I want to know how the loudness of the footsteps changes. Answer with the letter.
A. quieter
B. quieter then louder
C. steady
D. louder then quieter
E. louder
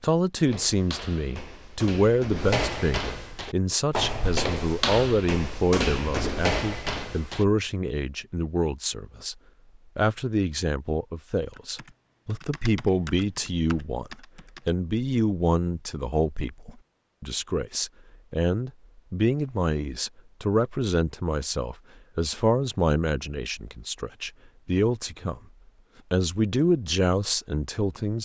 E.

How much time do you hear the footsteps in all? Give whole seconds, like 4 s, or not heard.
7 s.